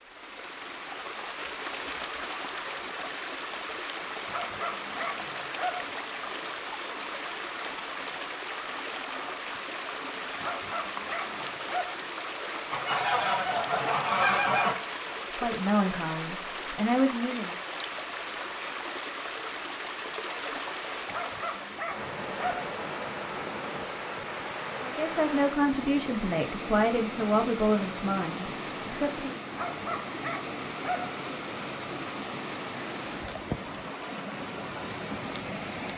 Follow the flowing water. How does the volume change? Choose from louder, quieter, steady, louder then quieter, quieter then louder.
steady.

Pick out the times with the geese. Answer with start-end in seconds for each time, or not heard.
12.7-14.8.